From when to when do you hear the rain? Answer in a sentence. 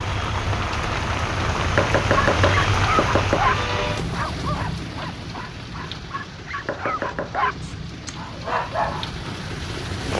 You can hear the rain from 0.0 to 10.1 s.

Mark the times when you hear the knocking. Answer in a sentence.
You can hear the knocking from 1.8 to 3.4 s and from 6.7 to 7.5 s.